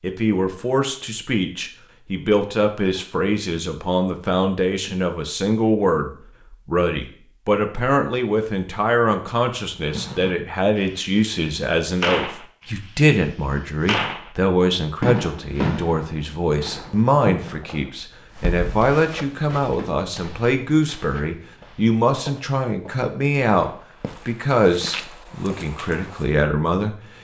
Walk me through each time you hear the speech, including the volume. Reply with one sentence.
You can hear the speech from 0.0 to 26.9 s, at a steady volume.